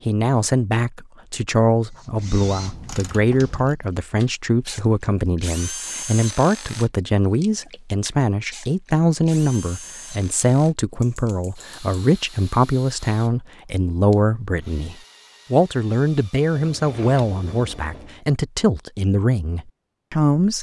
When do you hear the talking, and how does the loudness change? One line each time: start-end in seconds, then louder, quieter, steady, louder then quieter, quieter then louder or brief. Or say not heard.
0.1-20.5 steady.